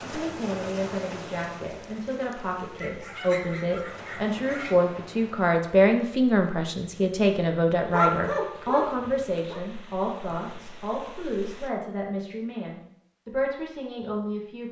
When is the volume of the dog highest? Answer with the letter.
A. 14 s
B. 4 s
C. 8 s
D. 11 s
C.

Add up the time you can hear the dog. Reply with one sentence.
The dog can be heard for 4 seconds in total.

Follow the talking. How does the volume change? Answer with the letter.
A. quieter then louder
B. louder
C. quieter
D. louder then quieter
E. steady
D.